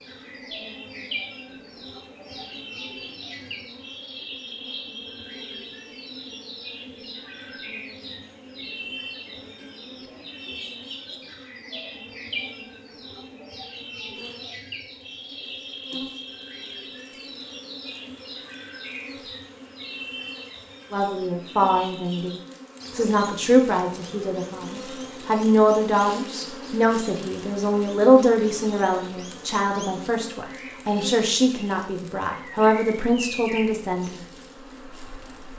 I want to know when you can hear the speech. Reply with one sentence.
You can hear the speech from 20.9 to 34.2 s.